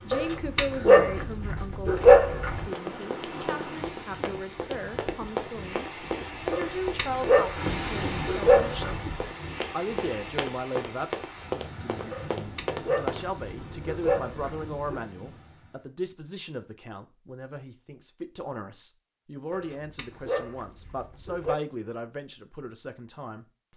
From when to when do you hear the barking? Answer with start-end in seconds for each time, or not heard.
0.1-2.6, 6.5-9.2, 12.1-15.0, 19.5-21.6.